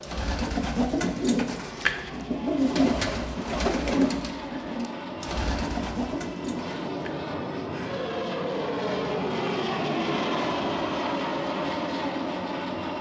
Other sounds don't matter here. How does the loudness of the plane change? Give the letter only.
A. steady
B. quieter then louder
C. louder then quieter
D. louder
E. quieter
D.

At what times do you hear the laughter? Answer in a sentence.
The laughter can't be heard in this clip.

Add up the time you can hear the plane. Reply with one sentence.
The plane can be heard for 13 seconds in total.